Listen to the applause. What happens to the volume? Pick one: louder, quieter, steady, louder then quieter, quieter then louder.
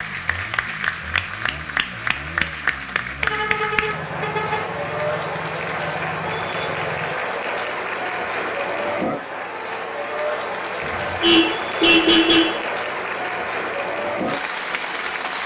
steady.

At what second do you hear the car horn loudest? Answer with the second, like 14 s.
12 s.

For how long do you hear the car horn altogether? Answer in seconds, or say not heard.
3 s.